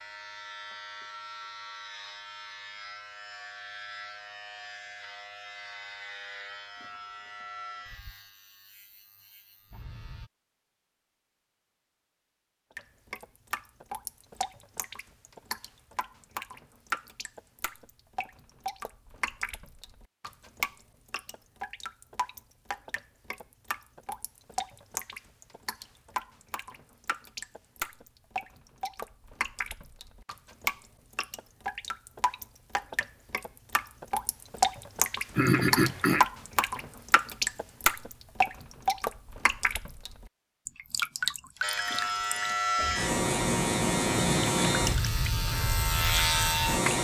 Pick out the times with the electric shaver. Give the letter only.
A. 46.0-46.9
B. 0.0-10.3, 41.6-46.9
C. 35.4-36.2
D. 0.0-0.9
B.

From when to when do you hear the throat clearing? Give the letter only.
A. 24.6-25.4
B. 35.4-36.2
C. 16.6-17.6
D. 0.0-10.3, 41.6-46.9
B.